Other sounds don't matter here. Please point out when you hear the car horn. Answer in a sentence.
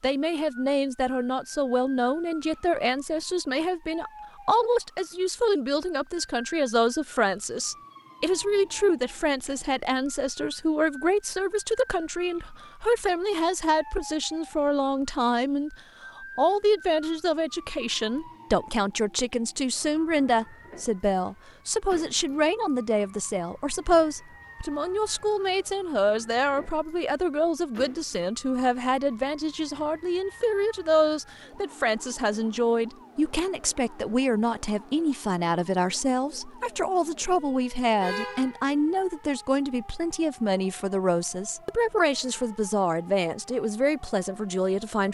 You can hear the car horn from 38.0 to 38.6 s.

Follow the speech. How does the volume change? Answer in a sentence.
The volume of the speech stays about the same.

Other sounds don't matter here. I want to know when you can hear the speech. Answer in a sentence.
You can hear the speech from 0.0 to 45.0 s.